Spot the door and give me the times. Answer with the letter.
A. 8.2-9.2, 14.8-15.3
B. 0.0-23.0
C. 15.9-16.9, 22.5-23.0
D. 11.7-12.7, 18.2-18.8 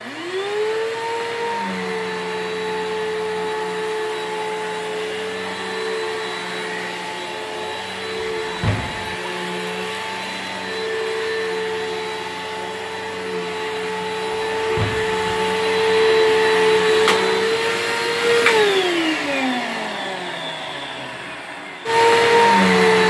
A.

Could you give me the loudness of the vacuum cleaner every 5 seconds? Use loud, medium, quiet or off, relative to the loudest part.
medium, medium, medium, loud, loud.